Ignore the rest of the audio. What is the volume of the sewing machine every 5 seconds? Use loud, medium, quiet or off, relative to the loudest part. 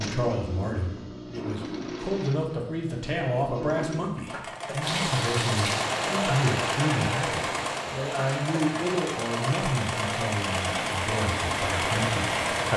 medium, loud, loud.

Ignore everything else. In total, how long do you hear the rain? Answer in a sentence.
You can hear the rain for 8 seconds altogether.